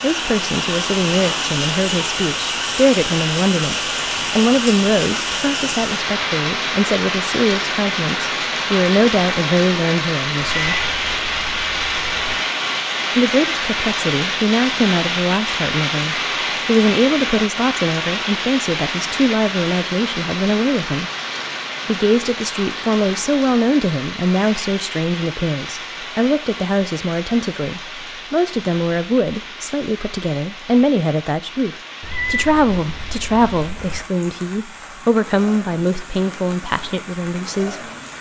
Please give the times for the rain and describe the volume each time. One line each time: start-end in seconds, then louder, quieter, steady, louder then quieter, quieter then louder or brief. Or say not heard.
0.0-38.1 quieter.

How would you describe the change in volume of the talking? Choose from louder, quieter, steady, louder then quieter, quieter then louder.
steady.